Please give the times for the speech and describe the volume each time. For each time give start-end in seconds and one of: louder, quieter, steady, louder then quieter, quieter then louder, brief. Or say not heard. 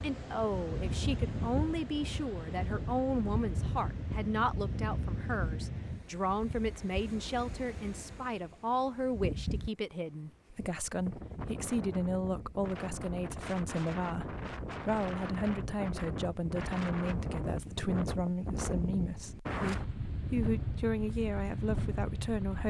0.0-22.6 steady.